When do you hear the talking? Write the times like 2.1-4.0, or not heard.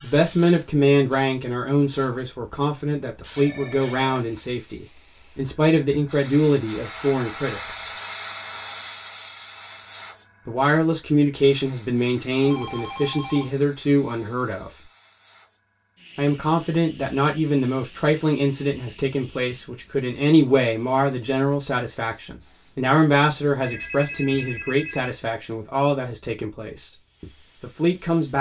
0.0-7.8, 10.4-14.7, 16.1-28.3.